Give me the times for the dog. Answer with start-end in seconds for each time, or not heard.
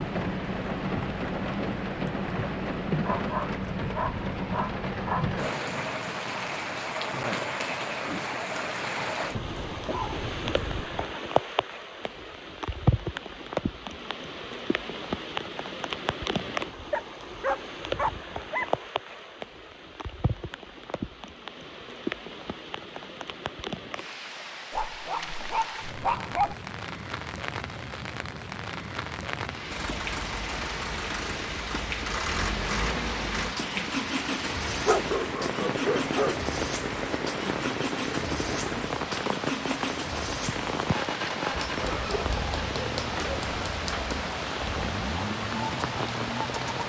3.0-5.3, 9.3-11.2, 16.9-18.9, 24.7-26.6, 34.9-36.4, 41.5-44.1.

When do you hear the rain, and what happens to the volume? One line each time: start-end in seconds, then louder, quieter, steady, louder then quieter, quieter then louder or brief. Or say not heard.
0.0-46.8 quieter then louder.